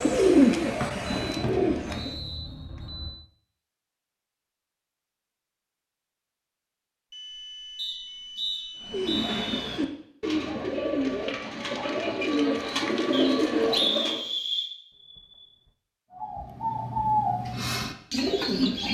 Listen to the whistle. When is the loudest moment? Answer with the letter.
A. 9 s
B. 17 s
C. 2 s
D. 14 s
D.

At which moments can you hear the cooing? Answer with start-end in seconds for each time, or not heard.
0.0-2.1, 8.8-14.2, 16.1-18.8.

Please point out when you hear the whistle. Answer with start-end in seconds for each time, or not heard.
0.8-2.4, 7.8-9.8, 13.1-14.7.